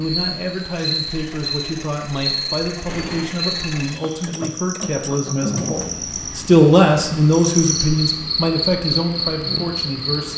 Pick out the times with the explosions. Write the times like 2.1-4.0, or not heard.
2.9-3.3.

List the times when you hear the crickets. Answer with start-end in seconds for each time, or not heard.
0.0-10.3.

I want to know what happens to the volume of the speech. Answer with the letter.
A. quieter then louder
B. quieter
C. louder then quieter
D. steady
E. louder
C.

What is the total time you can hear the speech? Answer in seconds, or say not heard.
10 s.